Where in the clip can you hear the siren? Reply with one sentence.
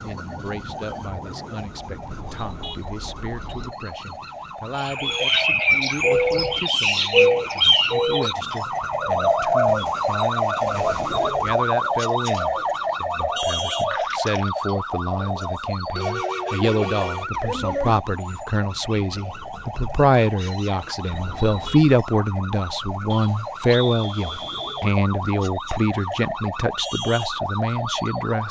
You can hear the siren from 0.0 to 28.4 s.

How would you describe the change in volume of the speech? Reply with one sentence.
The loudness of the speech goes up.